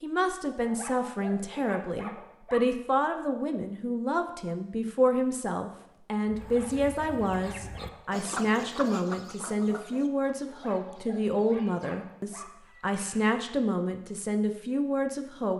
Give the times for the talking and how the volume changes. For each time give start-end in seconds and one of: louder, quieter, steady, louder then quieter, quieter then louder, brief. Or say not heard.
0.0-15.5 steady.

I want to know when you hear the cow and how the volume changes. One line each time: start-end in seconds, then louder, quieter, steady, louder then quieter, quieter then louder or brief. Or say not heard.
not heard.